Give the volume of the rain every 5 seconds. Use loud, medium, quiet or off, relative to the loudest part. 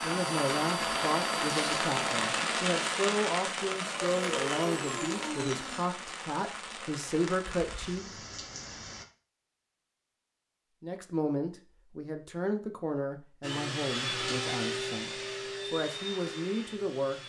loud, medium, off, off.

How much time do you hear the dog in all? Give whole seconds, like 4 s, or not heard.
not heard.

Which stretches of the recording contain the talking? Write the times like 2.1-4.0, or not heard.
0.0-8.6, 10.8-17.2.